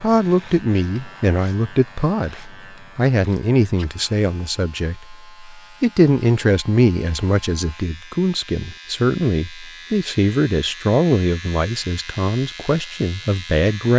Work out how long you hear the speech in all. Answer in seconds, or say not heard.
14 s.